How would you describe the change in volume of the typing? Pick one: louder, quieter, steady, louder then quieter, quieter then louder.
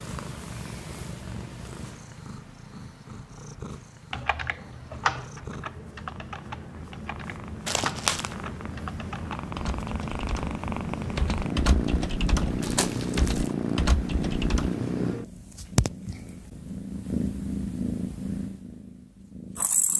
quieter then louder.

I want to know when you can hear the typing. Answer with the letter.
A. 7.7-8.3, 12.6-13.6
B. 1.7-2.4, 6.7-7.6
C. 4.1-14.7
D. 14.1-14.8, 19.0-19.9
C.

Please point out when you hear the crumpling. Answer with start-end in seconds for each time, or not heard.
7.7-8.3, 12.6-13.6.